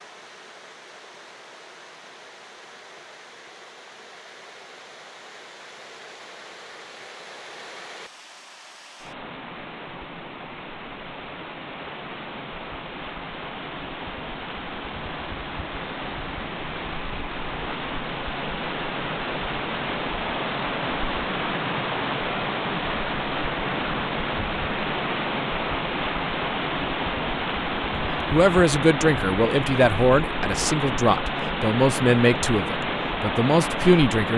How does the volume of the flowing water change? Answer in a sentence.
The volume of the flowing water goes up.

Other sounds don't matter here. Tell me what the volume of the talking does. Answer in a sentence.
The volume of the talking stays about the same.